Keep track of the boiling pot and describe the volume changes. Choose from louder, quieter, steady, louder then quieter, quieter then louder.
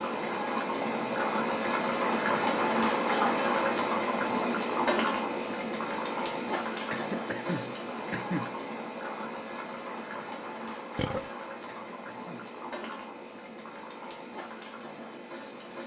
quieter.